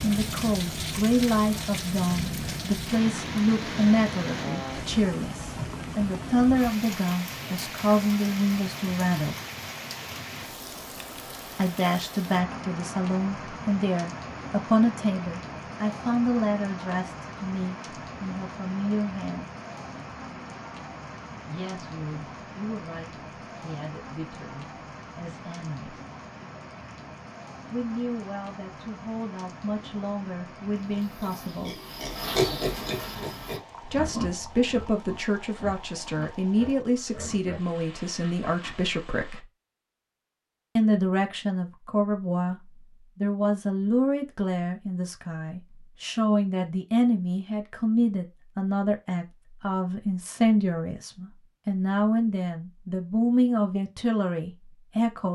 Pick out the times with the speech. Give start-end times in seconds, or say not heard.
0.0-9.3, 11.6-19.4, 21.4-26.1, 27.7-31.8, 33.8-39.5, 40.8-55.2.